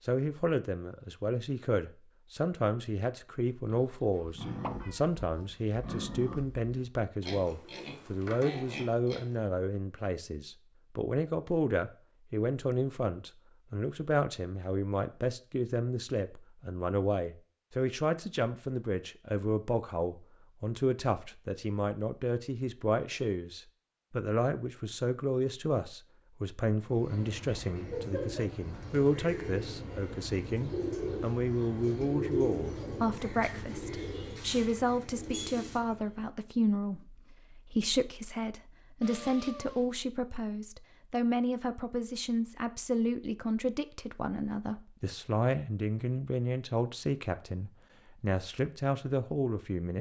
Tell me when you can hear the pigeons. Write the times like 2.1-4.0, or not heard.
26.7-36.2.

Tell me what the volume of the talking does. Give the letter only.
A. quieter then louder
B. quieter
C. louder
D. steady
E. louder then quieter
D.